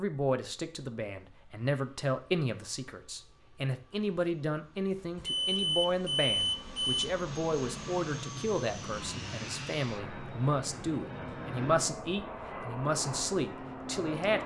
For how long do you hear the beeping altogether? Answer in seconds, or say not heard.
2 s.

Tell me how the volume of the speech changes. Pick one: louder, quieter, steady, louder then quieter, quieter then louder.
steady.